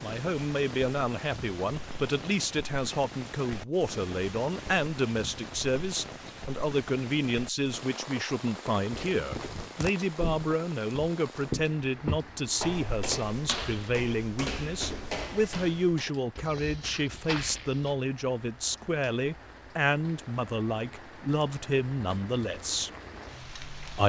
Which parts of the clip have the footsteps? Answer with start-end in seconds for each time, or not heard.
8.9-17.9.